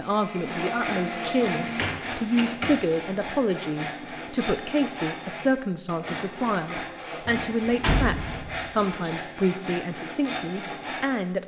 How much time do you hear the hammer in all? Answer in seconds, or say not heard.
not heard.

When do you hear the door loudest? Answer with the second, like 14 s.
8 s.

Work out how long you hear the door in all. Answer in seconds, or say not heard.
3 s.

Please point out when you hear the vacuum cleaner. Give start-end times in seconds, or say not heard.
0.0-1.9.